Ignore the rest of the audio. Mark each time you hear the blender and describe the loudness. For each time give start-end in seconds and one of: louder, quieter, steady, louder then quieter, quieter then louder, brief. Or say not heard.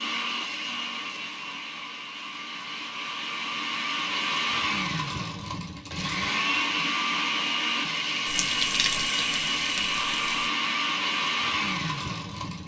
0.0-12.6 louder.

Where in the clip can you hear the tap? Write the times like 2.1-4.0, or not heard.
8.2-10.5.